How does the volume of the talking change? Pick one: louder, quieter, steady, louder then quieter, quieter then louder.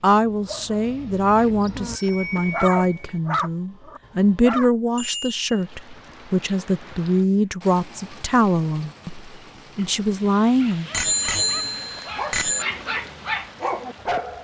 steady.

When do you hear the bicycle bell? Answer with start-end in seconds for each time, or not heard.
1.4-3.2, 5.0-5.4, 10.9-12.7.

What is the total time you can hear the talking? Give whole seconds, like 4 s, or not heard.
11 s.